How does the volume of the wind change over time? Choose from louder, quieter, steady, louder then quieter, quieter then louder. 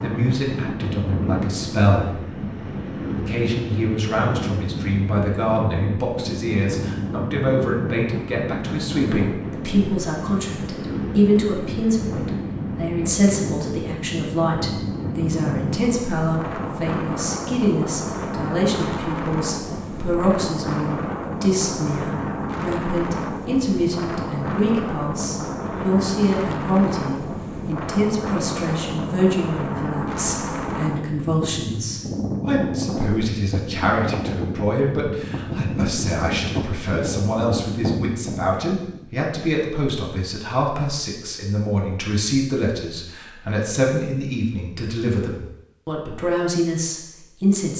steady.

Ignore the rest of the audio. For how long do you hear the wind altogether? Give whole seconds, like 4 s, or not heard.
39 s.